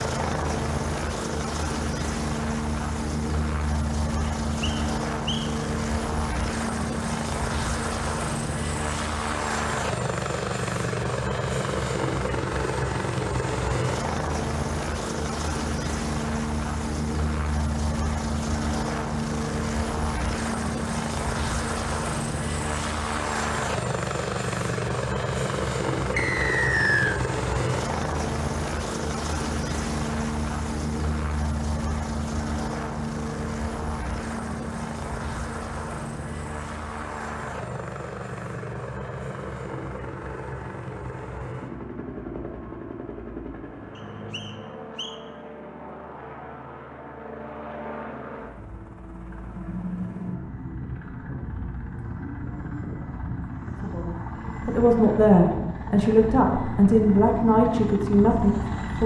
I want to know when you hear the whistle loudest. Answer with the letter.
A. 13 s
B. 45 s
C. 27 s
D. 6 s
C.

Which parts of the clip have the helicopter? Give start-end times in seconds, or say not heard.
0.0-59.0.